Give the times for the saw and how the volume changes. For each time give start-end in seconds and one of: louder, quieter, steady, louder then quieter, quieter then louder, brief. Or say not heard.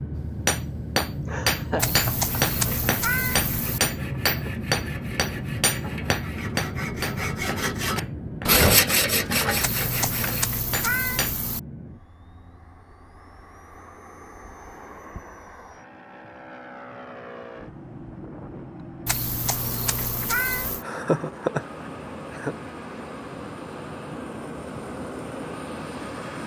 2.4-10.4 louder.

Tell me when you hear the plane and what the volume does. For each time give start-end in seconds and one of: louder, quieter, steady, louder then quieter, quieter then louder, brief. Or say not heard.
0.0-26.4 quieter then louder.